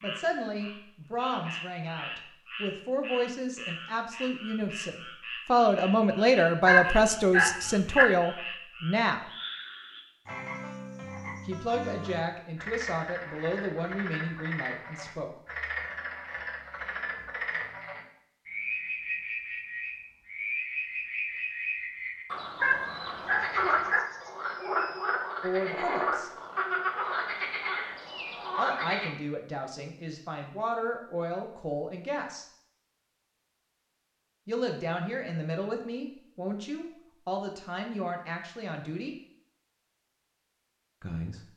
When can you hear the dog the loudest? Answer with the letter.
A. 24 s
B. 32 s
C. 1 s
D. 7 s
D.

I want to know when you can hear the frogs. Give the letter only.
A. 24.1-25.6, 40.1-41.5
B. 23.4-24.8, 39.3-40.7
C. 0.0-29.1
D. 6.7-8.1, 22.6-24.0
C.